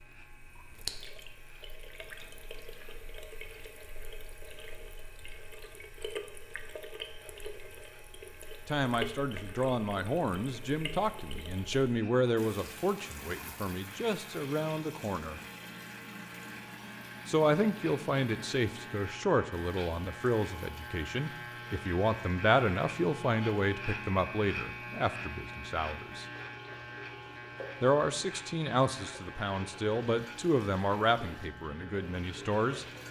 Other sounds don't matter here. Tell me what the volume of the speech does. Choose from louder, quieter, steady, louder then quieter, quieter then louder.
steady.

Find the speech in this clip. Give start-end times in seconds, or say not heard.
8.7-15.4, 17.2-26.2, 27.8-32.9.